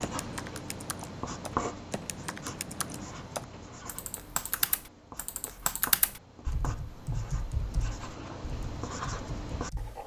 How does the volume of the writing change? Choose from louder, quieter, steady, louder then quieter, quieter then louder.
quieter then louder.